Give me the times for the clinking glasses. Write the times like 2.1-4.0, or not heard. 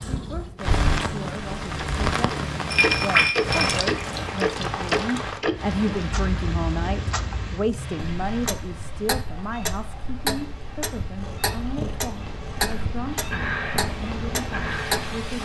2.7-4.3.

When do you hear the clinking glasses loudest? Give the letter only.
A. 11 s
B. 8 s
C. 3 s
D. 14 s
C.